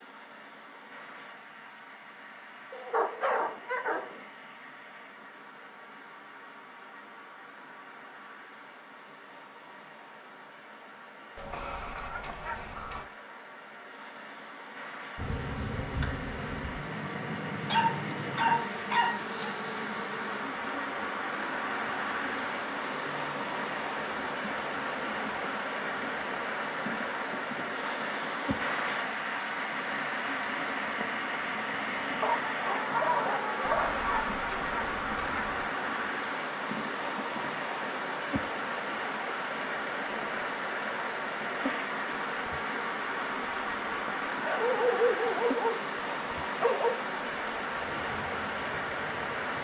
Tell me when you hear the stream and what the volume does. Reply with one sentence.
You can hear the stream from 0.0 to 49.5 s, getting louder.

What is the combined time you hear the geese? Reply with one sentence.
You can hear the geese for 4 seconds altogether.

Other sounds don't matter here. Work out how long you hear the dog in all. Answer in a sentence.
The dog can be heard for 8 seconds in total.